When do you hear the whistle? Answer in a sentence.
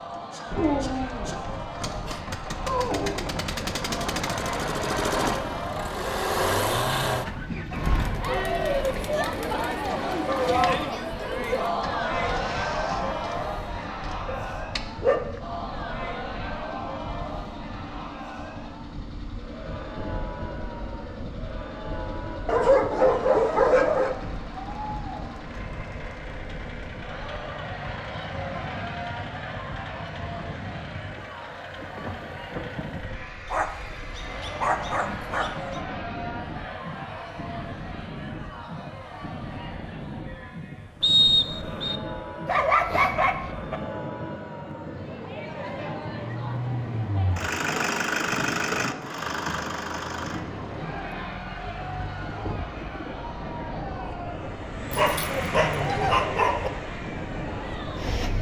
The whistle can be heard from 41.0 to 42.0 s.